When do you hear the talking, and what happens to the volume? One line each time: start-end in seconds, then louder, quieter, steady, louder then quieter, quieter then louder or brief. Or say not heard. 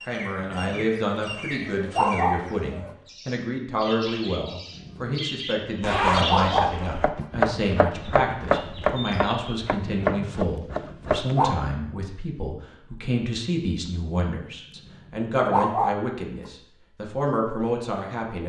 0.1-18.4 steady.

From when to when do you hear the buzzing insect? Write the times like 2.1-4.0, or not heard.
not heard.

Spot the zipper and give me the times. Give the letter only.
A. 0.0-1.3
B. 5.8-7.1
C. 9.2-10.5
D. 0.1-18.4
B.